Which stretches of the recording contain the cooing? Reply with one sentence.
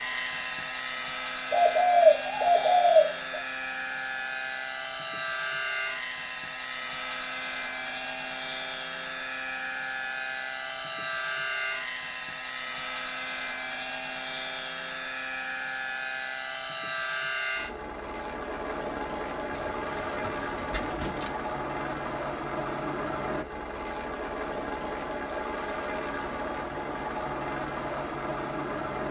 The cooing can be heard from 1.5 to 3.1 s and from 19.5 to 21.3 s.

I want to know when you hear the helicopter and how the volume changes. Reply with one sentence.
You can hear the helicopter from 0.0 to 29.0 s, at a steady volume.